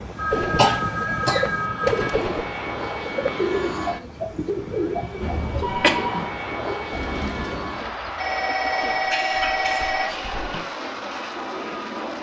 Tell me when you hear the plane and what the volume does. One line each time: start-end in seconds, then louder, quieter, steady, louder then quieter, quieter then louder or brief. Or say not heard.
0.0-12.1 steady.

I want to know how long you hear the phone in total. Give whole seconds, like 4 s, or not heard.
5 s.